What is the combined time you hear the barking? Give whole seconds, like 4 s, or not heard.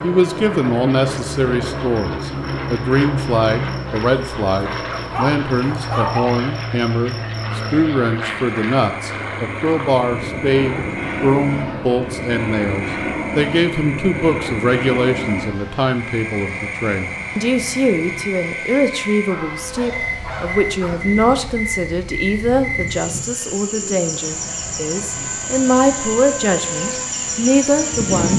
3 s.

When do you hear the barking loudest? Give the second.
6 s.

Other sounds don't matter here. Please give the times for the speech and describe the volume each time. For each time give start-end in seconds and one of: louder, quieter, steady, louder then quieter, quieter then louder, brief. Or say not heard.
0.0-28.3 steady.